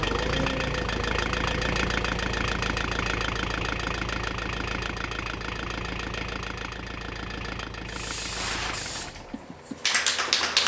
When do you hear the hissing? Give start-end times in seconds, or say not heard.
7.9-10.6.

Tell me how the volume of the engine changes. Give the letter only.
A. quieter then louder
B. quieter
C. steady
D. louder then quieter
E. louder
B.